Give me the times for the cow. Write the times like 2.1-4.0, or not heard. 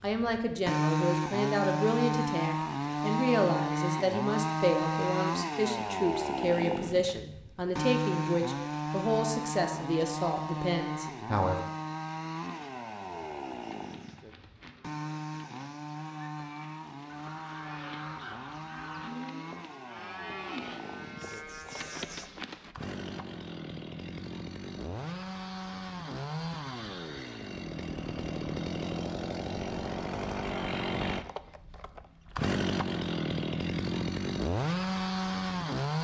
12.4-22.8.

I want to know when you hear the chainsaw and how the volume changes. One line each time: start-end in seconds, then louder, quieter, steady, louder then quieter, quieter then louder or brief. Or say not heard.
0.0-35.9 quieter then louder.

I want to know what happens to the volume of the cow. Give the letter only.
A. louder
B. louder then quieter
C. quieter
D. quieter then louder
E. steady
A.